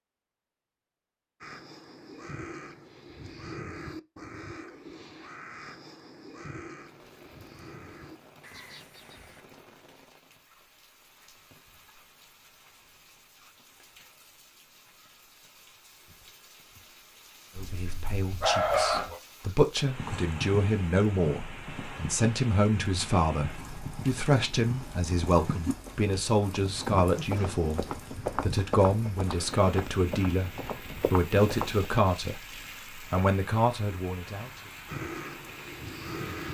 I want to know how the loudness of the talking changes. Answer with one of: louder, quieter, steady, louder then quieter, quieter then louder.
steady.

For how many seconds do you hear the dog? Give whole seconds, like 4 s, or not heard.
2 s.